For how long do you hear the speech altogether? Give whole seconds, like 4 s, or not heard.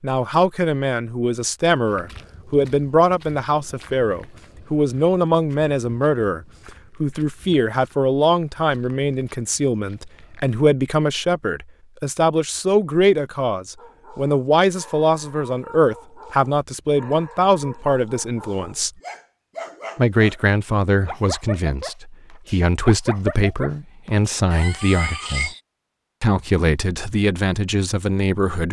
26 s.